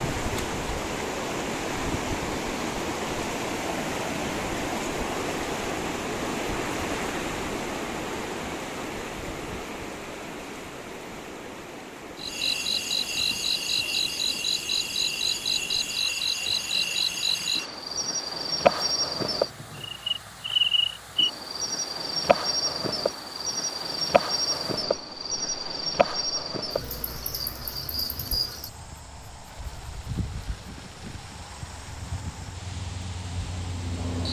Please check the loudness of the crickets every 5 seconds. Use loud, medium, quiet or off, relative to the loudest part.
off, off, loud, loud, loud, medium, quiet.